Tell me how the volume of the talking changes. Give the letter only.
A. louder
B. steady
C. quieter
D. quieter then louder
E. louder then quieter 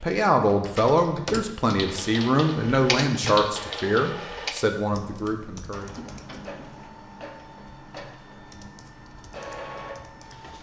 C.